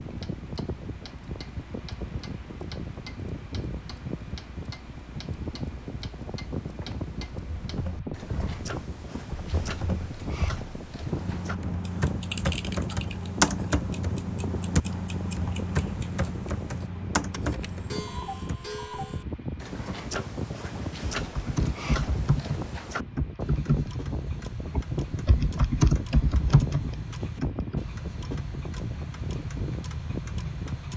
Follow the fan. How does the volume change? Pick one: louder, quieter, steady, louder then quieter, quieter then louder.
steady.